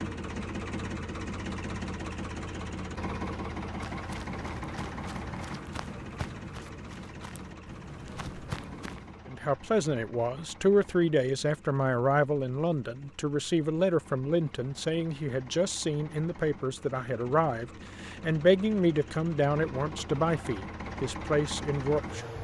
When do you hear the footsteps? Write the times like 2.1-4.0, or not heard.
3.8-9.2.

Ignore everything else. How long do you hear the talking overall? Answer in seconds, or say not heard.
13 s.